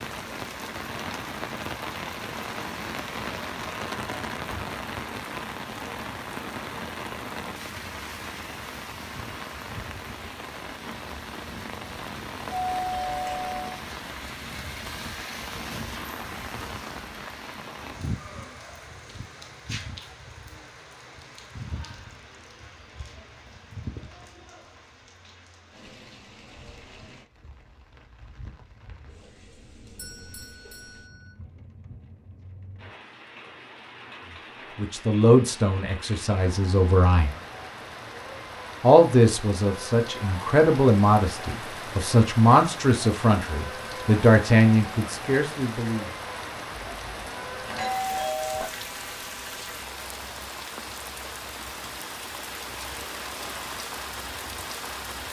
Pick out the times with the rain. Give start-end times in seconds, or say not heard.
0.0-55.2.